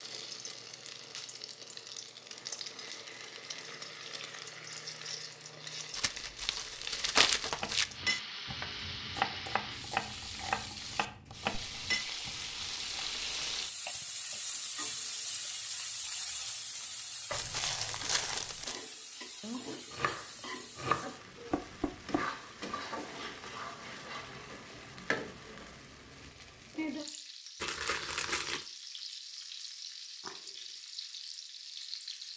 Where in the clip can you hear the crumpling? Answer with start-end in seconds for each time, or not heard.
6.0-7.8, 17.3-18.8, 27.6-28.6.